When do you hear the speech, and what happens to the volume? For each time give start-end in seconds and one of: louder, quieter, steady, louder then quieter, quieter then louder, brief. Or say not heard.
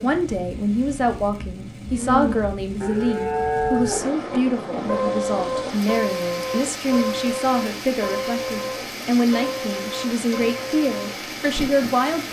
0.0-12.2 steady.